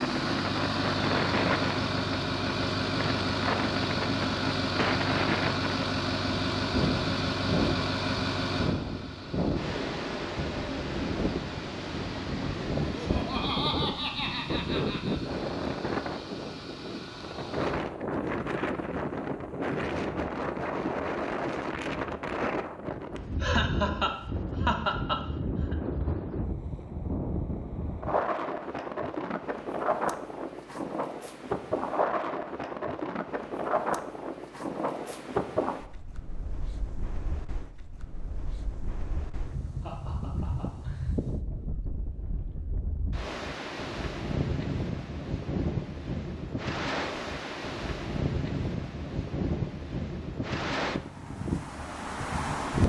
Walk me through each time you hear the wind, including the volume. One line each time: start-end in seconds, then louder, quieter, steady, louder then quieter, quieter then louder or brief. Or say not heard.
0.0-52.8 steady.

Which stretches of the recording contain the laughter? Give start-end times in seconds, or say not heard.
12.8-15.2, 23.4-25.8, 39.8-41.1.